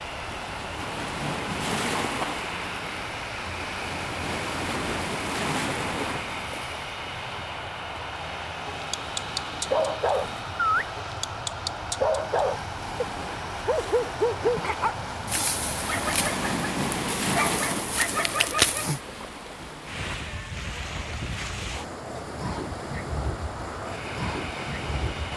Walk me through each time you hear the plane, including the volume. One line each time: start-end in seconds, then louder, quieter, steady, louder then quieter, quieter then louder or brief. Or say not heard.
0.0-16.1 steady
20.9-25.3 louder.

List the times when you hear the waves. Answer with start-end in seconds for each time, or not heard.
0.0-25.3.